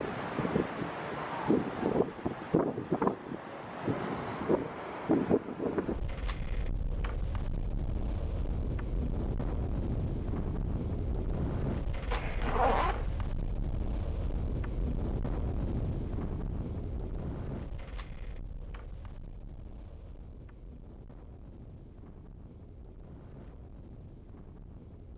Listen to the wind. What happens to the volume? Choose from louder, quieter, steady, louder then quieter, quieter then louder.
quieter.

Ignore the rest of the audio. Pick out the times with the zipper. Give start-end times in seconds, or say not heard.
12.1-13.2.